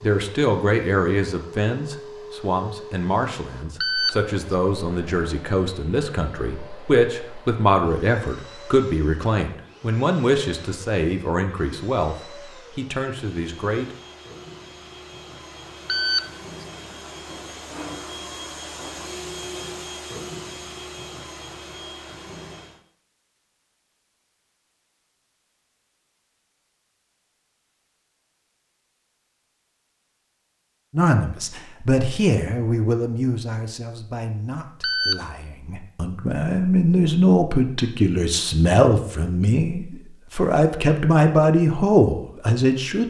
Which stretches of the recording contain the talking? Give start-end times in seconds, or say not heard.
0.0-13.9, 30.9-43.0.